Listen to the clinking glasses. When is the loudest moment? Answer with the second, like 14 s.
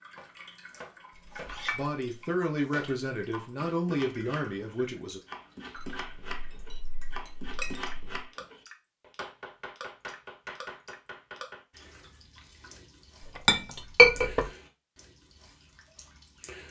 14 s.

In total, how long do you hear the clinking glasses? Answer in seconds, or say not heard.
4 s.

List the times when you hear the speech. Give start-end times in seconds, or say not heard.
1.7-5.2.